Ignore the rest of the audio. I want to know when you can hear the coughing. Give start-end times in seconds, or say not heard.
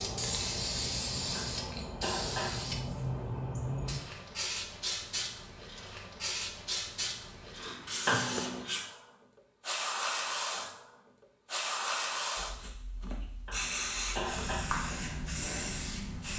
1.4-2.6, 8.1-8.7, 13.4-14.7.